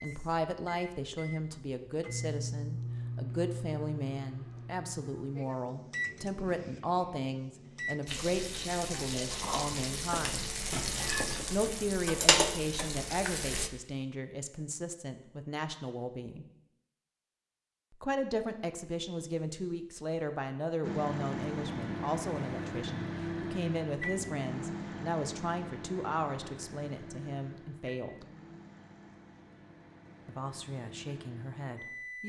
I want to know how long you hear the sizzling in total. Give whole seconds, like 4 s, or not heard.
6 s.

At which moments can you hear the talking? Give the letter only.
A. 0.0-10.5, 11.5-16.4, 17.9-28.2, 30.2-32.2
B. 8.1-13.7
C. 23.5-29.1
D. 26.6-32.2
A.